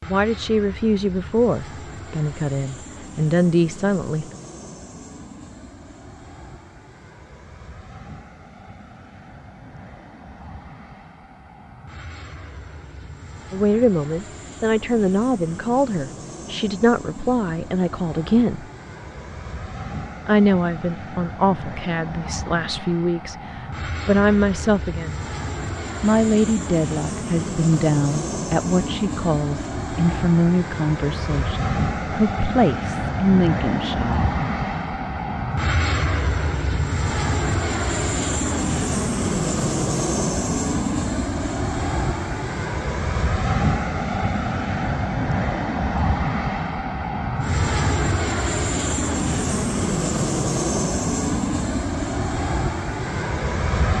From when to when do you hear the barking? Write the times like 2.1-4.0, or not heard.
not heard.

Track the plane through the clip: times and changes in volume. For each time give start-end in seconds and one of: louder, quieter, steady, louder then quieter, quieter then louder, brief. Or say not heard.
0.0-53.9 louder.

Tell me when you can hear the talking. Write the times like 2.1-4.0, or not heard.
0.1-4.2, 13.5-18.6, 20.2-25.1, 26.0-34.4.